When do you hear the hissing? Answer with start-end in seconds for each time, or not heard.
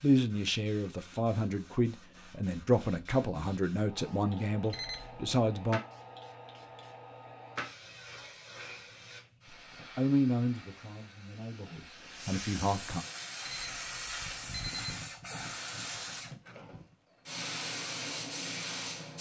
0.0-19.1.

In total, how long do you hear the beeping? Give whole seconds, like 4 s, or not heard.
2 s.